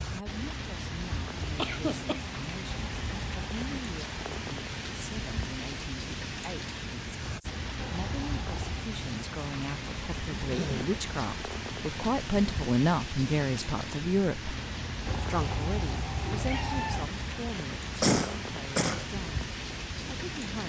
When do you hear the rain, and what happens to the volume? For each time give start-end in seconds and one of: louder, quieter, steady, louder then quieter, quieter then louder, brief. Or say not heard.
0.0-20.6 steady.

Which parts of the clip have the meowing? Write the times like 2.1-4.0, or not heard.
2.7-3.9, 7.8-8.9, 15.1-17.1.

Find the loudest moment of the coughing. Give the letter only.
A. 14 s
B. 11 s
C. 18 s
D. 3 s
C.